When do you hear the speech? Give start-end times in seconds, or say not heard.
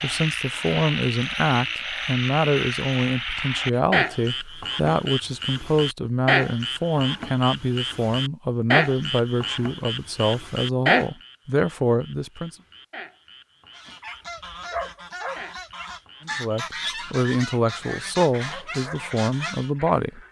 0.0-12.6, 16.2-20.2.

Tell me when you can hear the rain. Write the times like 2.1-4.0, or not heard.
not heard.